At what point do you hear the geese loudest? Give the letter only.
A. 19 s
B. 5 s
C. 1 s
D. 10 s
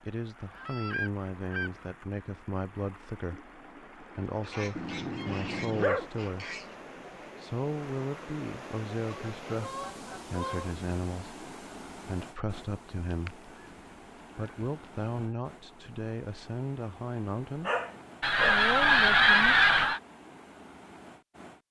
A.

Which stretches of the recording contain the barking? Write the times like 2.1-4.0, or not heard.
4.8-6.1, 17.6-18.6.